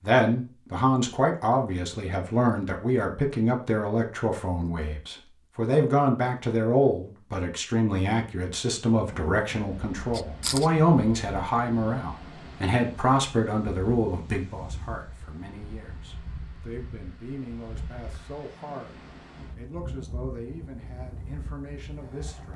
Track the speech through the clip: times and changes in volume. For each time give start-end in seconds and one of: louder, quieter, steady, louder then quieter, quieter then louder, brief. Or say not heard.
0.0-22.5 quieter.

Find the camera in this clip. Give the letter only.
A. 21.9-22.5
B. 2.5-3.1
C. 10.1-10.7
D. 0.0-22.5
C.